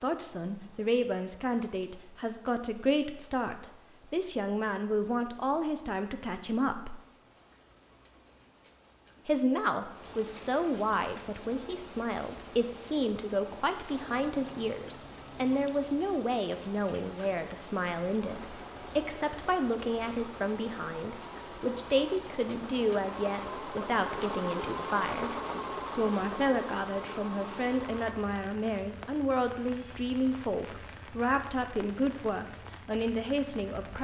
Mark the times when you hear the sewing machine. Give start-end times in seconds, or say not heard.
18.1-28.1.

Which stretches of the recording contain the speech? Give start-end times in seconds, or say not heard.
0.0-7.0, 9.2-34.0.